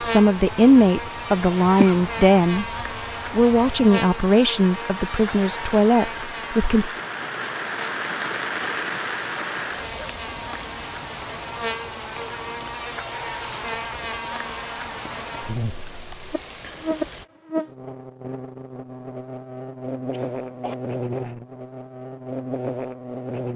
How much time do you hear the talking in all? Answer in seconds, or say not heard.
6 s.